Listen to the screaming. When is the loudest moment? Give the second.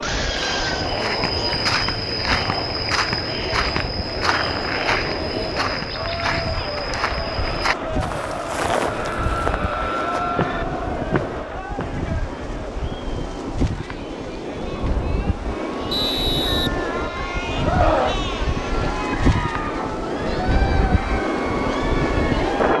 18 s.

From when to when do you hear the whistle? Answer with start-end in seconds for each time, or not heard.
15.9-17.4.